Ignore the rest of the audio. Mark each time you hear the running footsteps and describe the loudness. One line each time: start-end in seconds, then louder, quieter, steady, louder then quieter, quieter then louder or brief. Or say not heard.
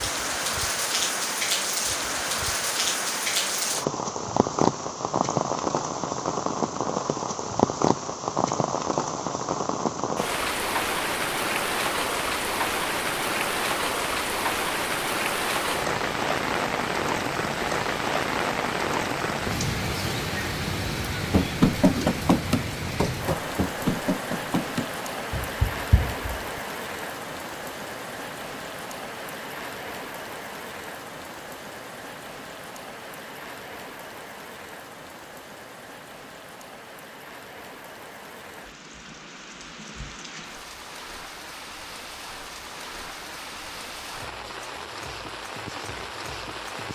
21.2-26.6 quieter.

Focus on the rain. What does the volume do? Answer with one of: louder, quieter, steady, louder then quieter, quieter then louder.
quieter.